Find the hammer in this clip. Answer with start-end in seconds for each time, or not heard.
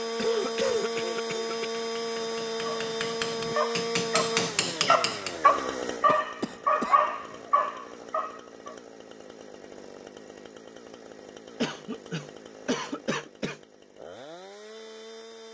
0.1-5.4.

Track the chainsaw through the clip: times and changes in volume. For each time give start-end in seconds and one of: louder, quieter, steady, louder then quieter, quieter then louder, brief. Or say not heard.
0.0-15.4 quieter.